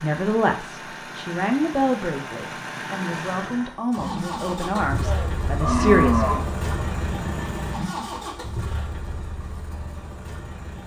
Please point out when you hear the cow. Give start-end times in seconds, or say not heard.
5.0-6.6.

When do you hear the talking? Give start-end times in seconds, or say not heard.
0.0-6.2.